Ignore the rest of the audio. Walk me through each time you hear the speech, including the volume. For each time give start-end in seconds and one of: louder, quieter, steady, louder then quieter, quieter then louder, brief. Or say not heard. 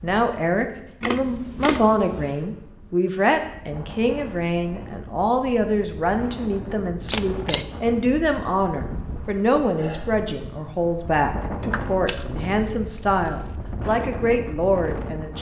0.0-15.3 steady.